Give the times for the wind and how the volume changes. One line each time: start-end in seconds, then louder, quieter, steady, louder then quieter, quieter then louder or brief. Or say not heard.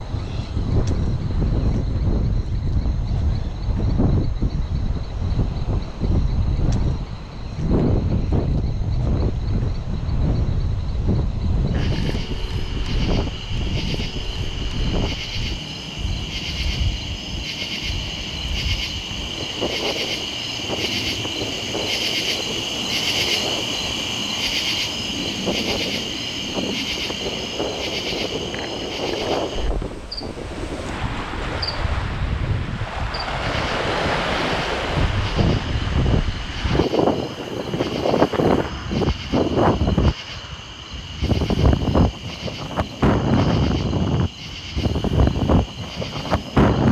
0.0-46.8 quieter then louder.